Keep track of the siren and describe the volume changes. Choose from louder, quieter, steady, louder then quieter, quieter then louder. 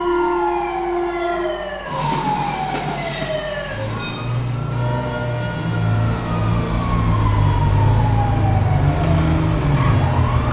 louder.